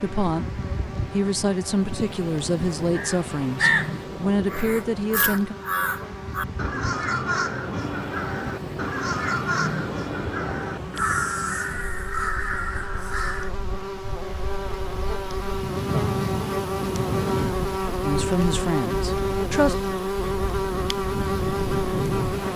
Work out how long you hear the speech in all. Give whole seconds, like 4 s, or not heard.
7 s.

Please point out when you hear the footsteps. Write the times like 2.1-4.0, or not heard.
not heard.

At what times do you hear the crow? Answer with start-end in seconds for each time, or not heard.
2.9-13.5.